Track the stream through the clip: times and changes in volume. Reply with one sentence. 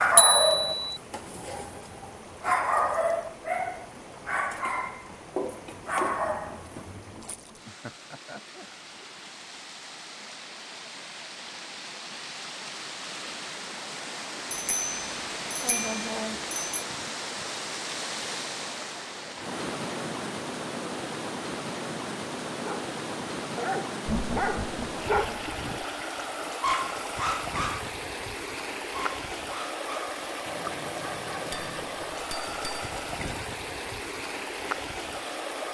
The stream can be heard from 0.1 to 35.6 s, getting louder.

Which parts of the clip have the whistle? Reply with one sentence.
You can't hear the whistle here.